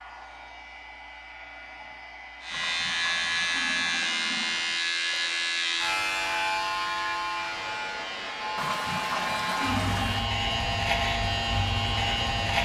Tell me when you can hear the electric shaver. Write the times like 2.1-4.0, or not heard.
2.4-12.6.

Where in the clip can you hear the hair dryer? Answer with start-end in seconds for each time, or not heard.
0.0-12.6.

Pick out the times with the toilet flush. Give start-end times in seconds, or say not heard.
2.5-4.8, 8.6-10.3.